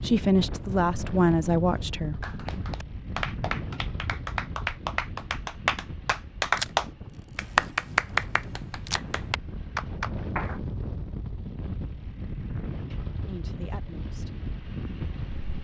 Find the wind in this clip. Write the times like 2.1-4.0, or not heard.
0.0-15.6.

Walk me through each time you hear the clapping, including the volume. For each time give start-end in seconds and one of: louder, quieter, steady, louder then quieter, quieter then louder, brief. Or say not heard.
2.2-10.6 louder then quieter.